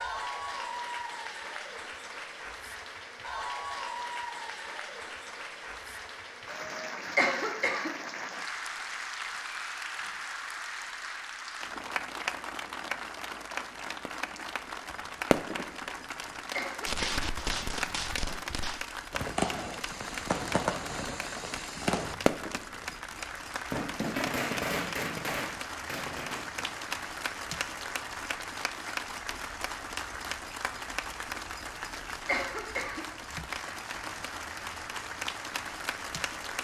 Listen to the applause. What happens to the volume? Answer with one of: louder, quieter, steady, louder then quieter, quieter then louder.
steady.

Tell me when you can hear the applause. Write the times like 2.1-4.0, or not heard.
0.0-36.5.